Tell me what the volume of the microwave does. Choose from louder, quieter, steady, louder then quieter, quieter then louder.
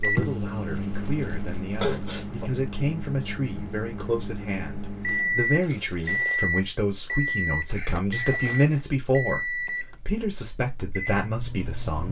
louder then quieter.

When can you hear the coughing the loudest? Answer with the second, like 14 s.
2 s.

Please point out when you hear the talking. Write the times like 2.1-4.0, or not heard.
0.0-12.0.